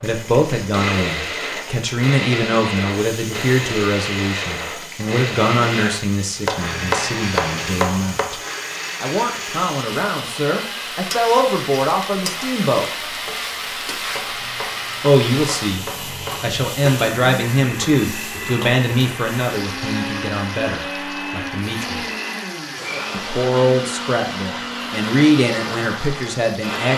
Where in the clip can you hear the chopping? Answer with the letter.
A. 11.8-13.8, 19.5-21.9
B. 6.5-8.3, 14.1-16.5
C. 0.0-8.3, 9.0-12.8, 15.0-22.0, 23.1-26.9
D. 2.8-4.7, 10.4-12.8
B.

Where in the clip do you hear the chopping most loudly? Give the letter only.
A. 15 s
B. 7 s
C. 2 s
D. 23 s
B.